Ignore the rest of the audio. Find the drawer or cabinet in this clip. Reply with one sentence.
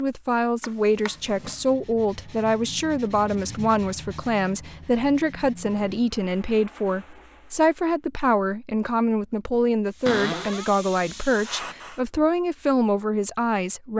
You can hear the drawer or cabinet from 0.6 to 1.6 s, from 5.6 to 6.0 s and from 10.1 to 10.7 s.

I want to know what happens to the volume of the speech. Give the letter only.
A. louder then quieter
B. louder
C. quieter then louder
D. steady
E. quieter
D.